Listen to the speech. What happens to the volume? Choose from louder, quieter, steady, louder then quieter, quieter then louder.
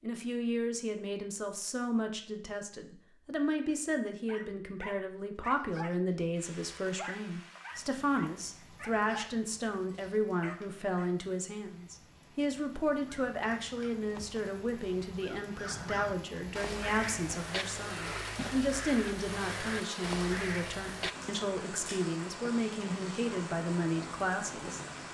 steady.